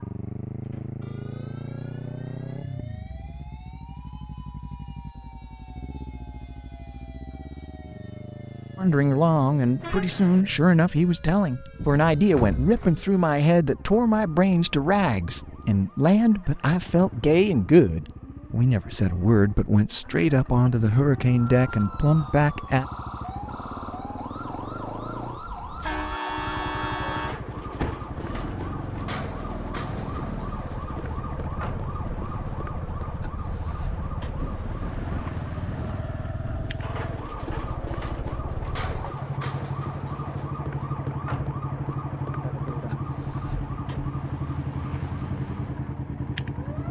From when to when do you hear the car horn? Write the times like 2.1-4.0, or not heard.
9.8-10.4, 25.8-27.4.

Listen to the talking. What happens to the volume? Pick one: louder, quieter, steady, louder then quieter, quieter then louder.
steady.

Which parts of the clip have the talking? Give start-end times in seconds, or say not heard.
8.8-22.9.